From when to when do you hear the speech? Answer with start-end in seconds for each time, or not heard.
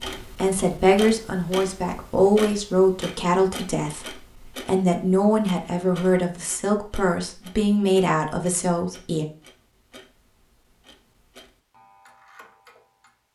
0.3-9.2.